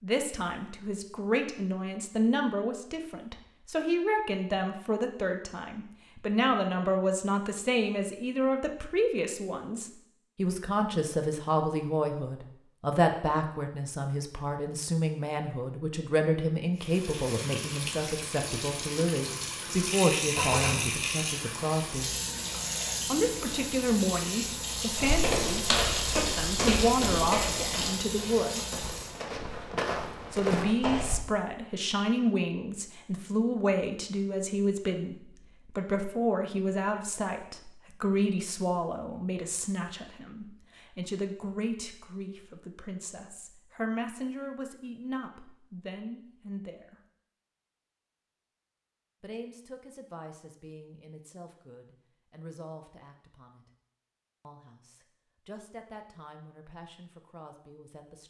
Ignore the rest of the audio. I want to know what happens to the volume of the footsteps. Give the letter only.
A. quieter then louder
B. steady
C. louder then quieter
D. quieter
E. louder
A.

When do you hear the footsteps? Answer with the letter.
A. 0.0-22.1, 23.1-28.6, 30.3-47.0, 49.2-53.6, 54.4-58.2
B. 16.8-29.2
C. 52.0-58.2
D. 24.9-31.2
D.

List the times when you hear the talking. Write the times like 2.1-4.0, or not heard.
0.0-22.1, 23.1-28.6, 30.3-47.0, 49.2-53.6, 54.4-58.2.